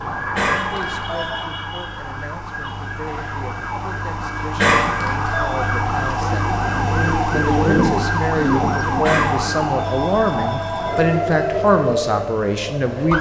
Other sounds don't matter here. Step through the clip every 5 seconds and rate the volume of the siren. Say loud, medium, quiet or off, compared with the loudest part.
medium, loud, loud.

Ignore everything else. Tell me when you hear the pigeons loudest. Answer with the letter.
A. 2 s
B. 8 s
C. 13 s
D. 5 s
B.